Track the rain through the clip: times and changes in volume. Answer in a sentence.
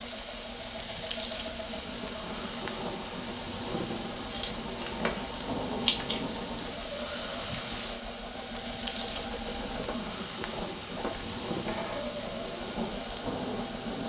You can hear the rain from 0.0 to 14.0 s, at a steady volume.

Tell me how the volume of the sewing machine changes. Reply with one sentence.
The loudness of the sewing machine stays about the same.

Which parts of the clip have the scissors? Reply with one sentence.
The scissors can be heard from 4.2 to 6.2 s.